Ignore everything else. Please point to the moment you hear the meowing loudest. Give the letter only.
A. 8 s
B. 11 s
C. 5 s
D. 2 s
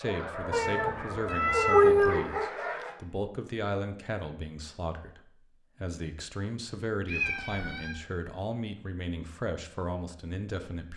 D.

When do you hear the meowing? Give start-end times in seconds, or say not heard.
0.5-2.3, 7.0-8.0.